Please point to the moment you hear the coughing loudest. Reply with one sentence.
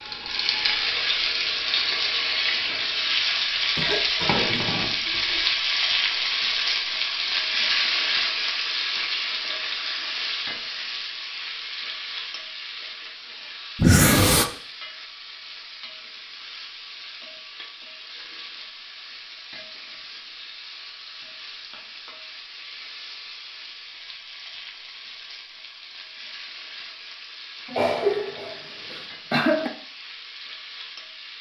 The volume of the coughing peaks at 14 seconds.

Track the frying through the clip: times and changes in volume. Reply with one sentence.
The frying can be heard from 0.0 to 31.3 s, getting quieter.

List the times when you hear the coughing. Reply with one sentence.
The coughing can be heard from 3.8 to 5.5 s, from 13.8 to 14.4 s and from 27.7 to 29.7 s.